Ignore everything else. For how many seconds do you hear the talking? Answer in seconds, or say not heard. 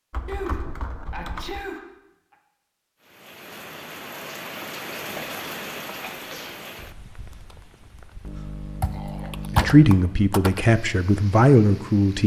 3 s.